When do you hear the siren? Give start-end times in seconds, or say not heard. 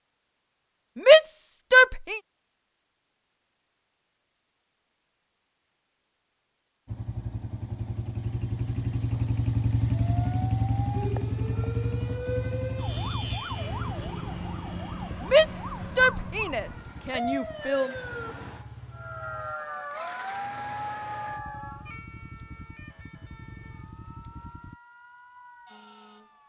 9.9-26.4.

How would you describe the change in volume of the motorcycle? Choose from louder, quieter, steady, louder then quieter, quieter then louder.
quieter.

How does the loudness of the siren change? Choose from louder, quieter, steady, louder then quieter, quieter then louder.
quieter.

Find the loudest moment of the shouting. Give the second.
1 s.